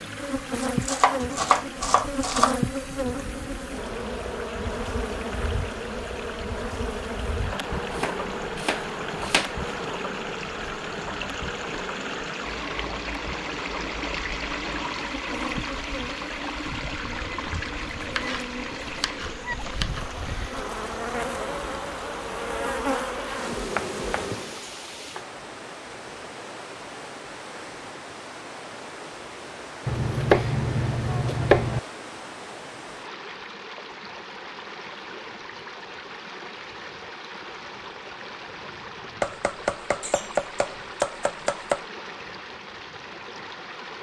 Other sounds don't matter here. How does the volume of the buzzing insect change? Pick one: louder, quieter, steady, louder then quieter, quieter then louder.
quieter then louder.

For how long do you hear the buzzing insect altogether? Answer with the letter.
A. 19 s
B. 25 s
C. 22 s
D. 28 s
B.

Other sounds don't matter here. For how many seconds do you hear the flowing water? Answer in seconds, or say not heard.
44 s.